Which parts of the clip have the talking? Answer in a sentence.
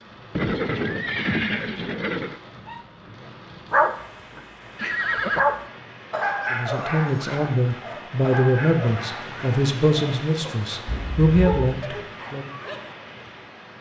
You can hear the talking from 6.5 to 12.5 s.